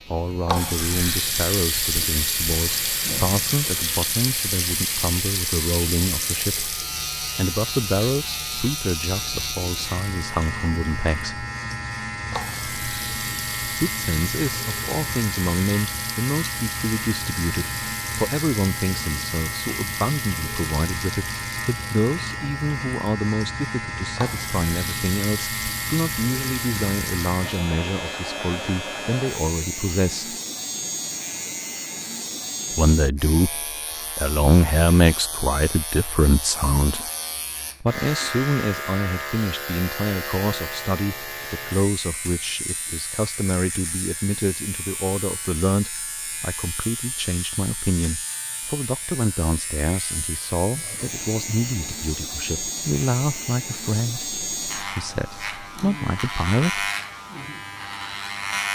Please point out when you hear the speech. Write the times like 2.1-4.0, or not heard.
0.1-11.4, 13.8-30.4, 32.7-37.1, 37.8-56.9.